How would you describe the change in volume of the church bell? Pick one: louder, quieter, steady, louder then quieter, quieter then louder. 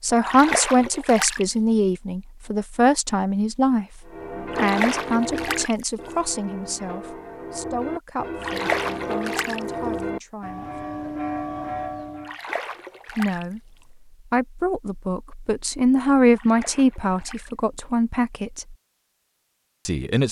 quieter then louder.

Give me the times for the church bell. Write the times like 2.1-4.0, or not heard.
4.0-12.3.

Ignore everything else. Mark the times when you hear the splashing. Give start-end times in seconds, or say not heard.
0.2-1.4, 4.5-5.8, 8.4-9.6, 12.2-13.4, 16.3-17.6.